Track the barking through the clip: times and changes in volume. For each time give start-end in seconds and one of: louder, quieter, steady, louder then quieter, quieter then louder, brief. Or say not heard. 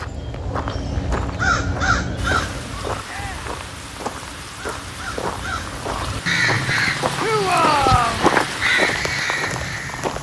not heard.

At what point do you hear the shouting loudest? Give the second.
8 s.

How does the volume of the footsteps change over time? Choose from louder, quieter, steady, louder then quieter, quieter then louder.
louder.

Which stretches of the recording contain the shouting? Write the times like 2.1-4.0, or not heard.
3.0-3.5, 7.2-8.2.